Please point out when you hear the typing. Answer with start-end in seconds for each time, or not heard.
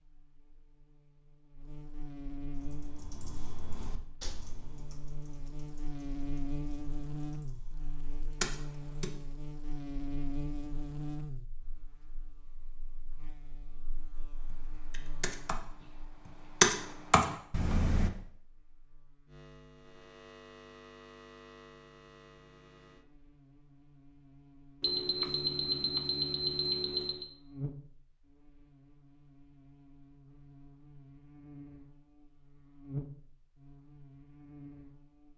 2.5-9.1, 14.4-18.1.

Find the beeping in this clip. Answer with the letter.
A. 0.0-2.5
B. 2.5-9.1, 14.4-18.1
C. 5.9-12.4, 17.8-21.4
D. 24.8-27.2
D.